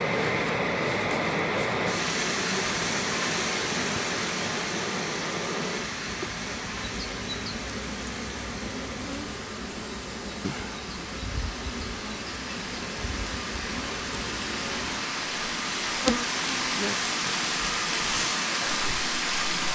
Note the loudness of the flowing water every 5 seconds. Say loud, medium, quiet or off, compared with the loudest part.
loud, medium, medium, loud.